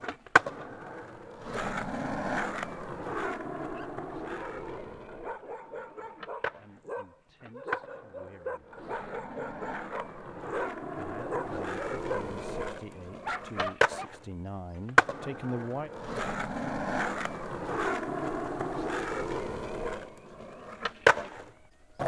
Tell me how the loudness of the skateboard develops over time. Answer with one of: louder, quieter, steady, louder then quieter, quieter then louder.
quieter then louder.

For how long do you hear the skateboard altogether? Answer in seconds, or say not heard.
22 s.